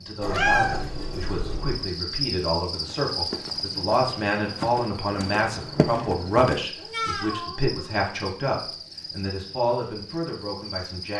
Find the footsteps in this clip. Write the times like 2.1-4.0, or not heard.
2.7-6.7.